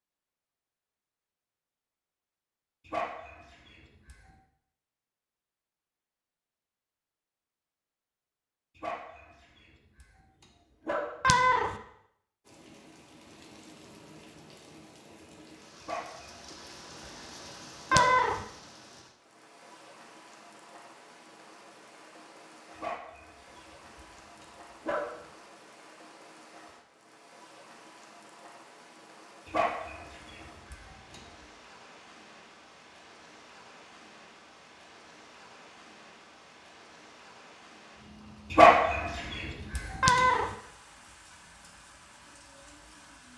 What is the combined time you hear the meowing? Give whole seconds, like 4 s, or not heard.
2 s.